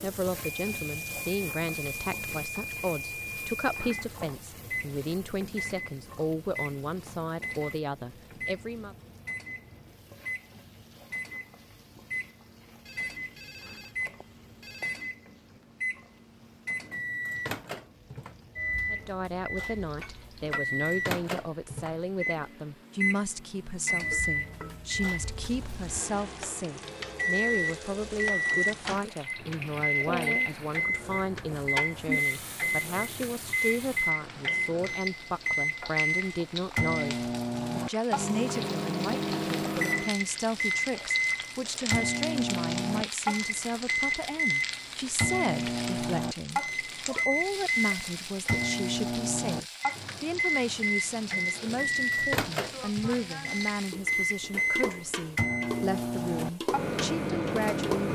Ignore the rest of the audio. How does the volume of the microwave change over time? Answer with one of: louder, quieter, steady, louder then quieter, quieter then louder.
louder.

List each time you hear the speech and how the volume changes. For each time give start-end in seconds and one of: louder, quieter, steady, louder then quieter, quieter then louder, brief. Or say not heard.
0.0-8.9 steady
18.9-58.1 steady.